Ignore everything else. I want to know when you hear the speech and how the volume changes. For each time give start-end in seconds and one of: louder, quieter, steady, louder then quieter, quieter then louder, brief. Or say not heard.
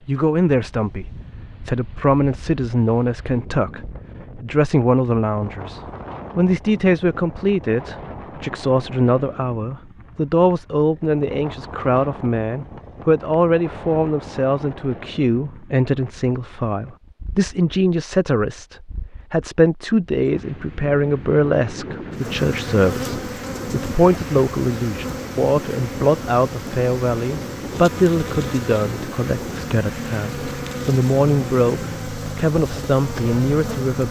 0.1-34.0 steady.